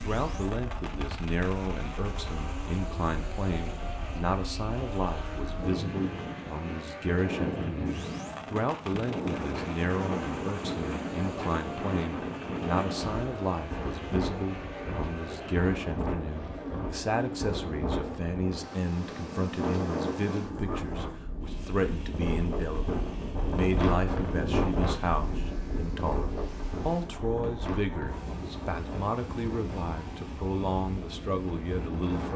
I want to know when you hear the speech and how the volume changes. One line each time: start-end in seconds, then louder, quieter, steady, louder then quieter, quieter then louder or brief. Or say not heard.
0.0-32.3 steady.